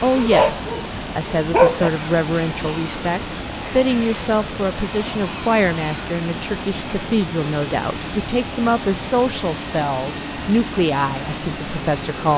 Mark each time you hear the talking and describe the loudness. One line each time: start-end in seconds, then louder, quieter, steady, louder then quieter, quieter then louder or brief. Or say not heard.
0.0-12.3 steady.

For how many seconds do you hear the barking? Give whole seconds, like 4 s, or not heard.
2 s.